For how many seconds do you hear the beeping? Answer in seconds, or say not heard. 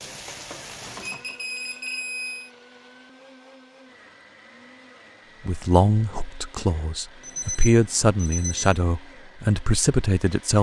3 s.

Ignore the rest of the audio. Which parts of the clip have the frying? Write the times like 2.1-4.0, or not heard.
0.0-1.8.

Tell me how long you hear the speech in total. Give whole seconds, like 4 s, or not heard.
5 s.